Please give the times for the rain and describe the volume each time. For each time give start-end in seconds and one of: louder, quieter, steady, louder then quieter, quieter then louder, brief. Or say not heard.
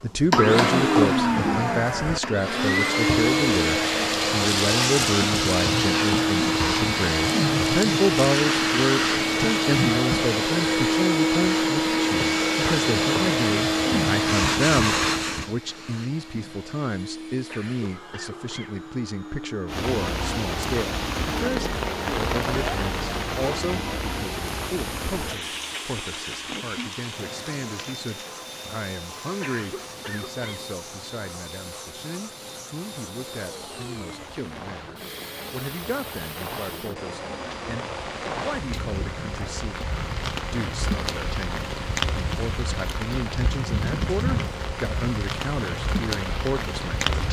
19.6-47.2 quieter then louder.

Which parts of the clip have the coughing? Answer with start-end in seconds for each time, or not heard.
17.4-18.8, 29.4-30.6.